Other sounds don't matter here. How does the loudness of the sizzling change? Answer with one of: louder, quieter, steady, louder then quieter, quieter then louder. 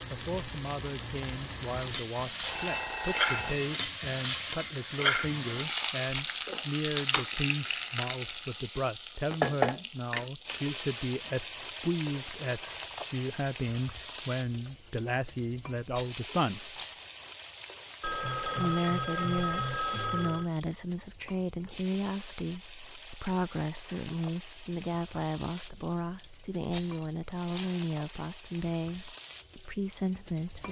quieter.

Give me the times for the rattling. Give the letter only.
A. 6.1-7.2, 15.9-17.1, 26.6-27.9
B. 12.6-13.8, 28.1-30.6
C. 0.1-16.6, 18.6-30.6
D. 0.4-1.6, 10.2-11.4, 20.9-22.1
A.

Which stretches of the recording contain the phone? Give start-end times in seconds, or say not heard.
2.4-3.7, 18.0-20.5.